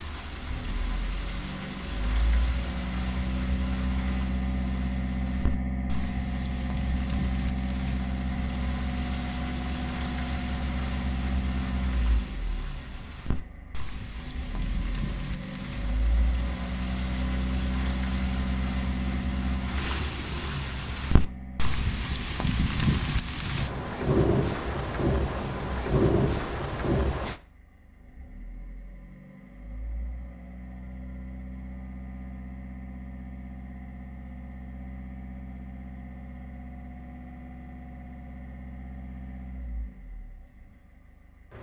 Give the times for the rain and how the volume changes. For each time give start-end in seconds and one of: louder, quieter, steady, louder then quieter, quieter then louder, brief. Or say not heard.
0.0-27.4 louder.